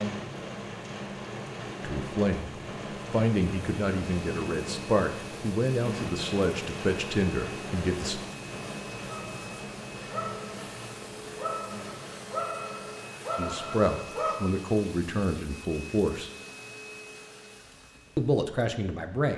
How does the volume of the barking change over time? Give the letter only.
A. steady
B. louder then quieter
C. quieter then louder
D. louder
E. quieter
C.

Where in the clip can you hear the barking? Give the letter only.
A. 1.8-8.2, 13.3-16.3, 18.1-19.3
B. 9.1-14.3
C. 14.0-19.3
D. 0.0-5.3
B.